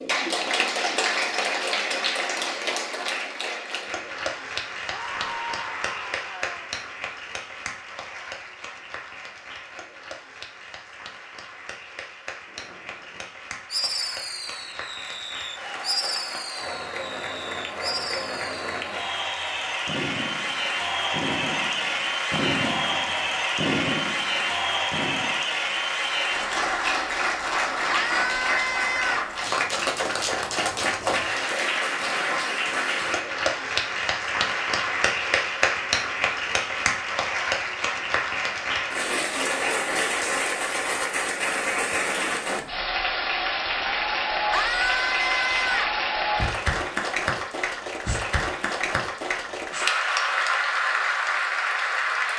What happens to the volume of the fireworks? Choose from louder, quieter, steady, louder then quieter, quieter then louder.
steady.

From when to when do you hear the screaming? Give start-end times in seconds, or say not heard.
4.9-6.7, 27.9-29.4, 44.5-46.0.